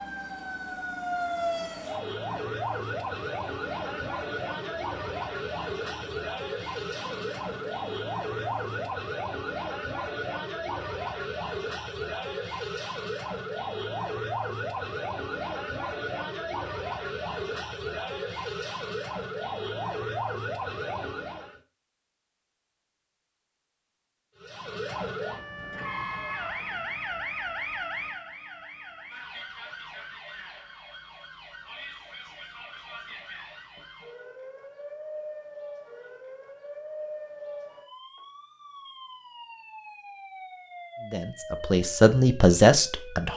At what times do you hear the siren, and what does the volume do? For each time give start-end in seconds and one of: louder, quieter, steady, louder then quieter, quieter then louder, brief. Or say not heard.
0.0-21.6 steady
24.4-43.3 quieter.